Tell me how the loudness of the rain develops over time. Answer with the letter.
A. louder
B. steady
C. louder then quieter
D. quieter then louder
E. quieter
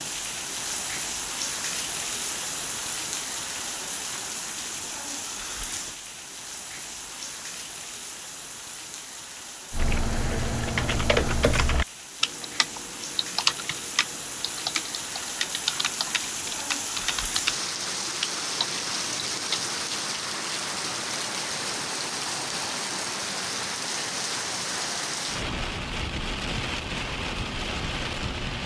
D.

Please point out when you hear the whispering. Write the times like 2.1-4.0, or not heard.
not heard.